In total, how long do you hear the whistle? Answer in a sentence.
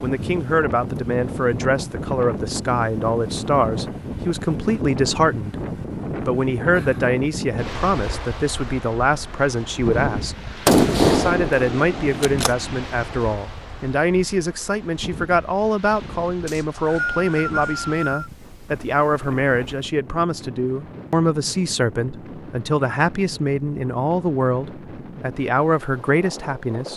The whistle can be heard for 2 seconds in total.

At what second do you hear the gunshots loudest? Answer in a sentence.
The volume of the gunshots peaks at 11 seconds.